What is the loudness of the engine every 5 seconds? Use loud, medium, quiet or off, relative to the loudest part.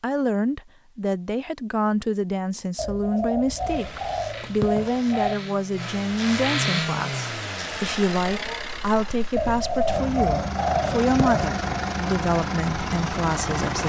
quiet, loud, loud.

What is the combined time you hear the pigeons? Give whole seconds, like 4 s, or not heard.
5 s.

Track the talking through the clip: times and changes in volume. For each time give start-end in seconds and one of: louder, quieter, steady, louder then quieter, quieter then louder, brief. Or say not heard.
0.0-13.8 steady.